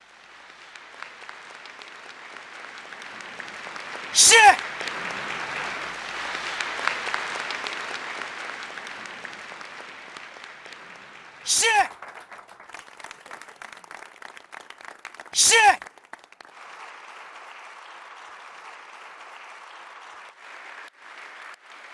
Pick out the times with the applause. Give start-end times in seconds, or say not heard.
0.0-21.8.